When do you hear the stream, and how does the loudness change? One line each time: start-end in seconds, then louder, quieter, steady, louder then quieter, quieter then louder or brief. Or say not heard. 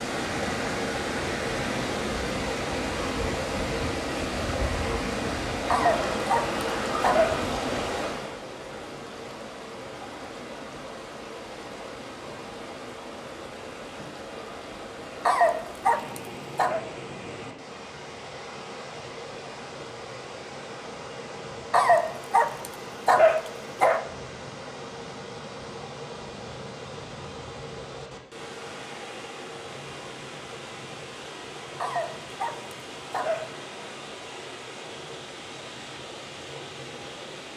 0.0-37.5 quieter.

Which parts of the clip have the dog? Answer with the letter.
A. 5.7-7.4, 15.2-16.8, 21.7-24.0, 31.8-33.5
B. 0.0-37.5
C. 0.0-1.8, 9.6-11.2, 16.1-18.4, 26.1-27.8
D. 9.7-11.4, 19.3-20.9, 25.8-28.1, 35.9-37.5
A.